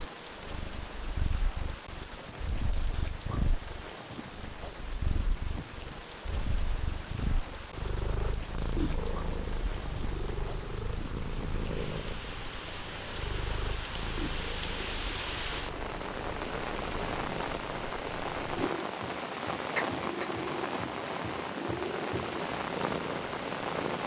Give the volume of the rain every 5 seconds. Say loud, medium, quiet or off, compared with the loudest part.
medium, medium, medium, loud, loud.